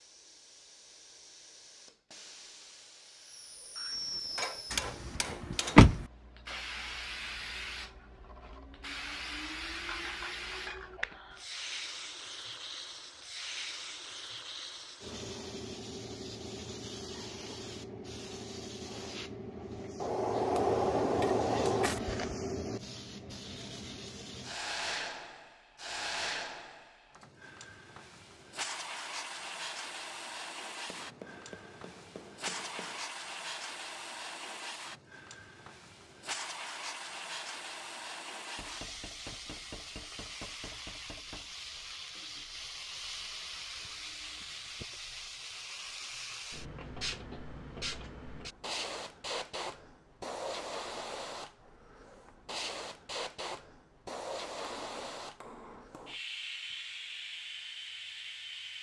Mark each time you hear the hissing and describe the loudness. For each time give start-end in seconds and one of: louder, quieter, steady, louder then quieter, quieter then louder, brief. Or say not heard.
0.0-58.7 steady.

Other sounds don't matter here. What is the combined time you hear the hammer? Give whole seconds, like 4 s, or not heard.
10 s.